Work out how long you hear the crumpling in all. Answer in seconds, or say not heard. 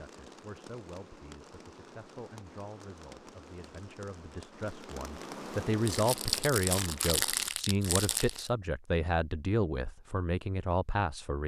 3 s.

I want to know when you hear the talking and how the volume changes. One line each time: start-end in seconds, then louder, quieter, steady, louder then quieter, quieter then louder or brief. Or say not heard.
0.0-11.4 louder.